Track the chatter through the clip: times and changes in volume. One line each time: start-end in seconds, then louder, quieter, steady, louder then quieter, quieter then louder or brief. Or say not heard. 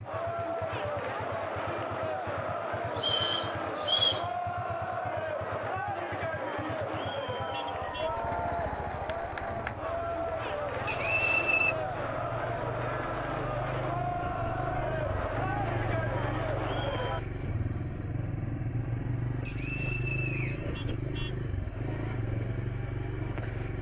0.0-17.2 steady.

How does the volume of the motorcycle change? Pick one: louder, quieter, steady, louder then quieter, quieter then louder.
louder.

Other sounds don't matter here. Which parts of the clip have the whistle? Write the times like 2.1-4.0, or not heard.
3.0-4.2, 10.8-11.8, 19.4-20.7.